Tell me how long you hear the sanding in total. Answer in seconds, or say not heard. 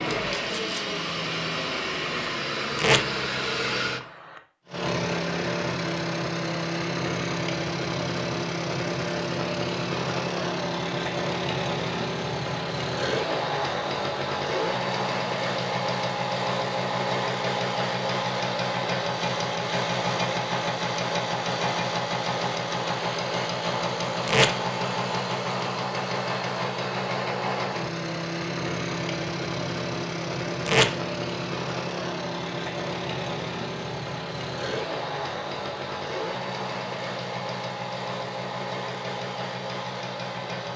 not heard.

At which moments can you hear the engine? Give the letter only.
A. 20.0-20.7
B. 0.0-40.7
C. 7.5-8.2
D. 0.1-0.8
B.